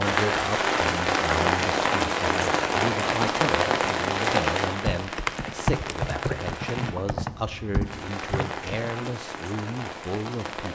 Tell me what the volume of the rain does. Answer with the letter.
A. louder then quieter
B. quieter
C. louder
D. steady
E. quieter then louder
B.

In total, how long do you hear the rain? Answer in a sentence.
You can hear the rain for 11 seconds altogether.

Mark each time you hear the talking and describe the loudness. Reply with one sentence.
You can hear the talking from 0.0 to 10.7 s, at a steady volume.